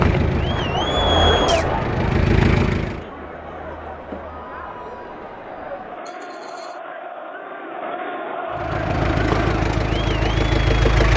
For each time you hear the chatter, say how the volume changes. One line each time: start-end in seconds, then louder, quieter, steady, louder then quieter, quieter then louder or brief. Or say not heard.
0.2-10.9 quieter then louder.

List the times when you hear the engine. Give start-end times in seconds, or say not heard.
0.0-3.0, 8.5-11.1.